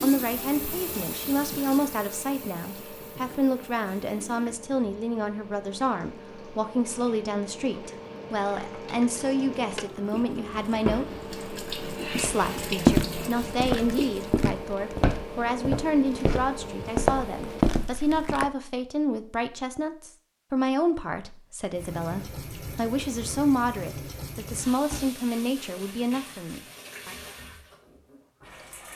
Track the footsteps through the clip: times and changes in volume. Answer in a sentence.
The footsteps can be heard from 12.2 to 18.5 s, getting quieter then louder.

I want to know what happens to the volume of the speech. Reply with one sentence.
The volume of the speech stays about the same.